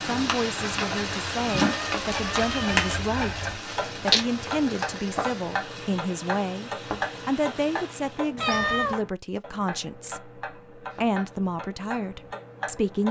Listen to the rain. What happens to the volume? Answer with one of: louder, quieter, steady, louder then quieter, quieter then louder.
quieter.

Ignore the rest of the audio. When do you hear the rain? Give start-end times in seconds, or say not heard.
0.0-8.3.